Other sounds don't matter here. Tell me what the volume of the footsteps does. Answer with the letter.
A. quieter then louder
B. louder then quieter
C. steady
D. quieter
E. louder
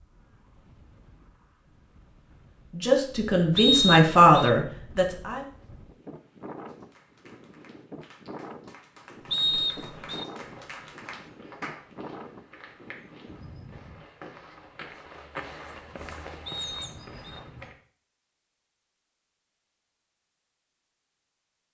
E.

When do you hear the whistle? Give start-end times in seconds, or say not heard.
3.5-4.5, 9.3-10.2, 16.4-17.4.